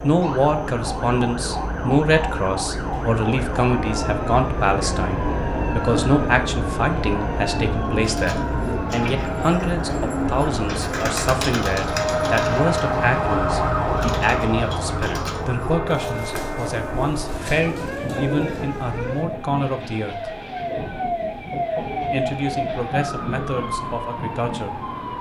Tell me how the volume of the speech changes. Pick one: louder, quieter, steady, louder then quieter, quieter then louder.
quieter.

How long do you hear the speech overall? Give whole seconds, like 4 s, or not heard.
23 s.